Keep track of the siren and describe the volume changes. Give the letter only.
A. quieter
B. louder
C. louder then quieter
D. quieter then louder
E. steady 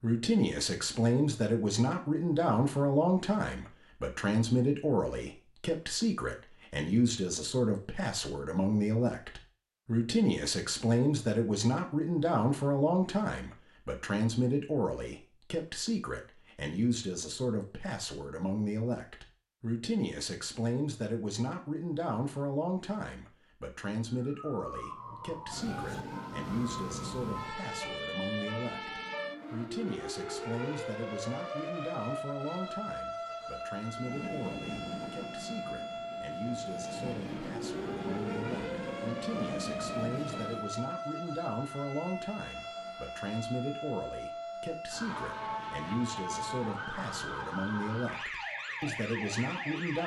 E.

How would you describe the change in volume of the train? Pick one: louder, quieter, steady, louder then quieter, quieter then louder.
quieter then louder.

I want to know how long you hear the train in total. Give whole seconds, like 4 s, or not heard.
7 s.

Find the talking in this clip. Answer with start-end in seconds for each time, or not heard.
0.0-50.0.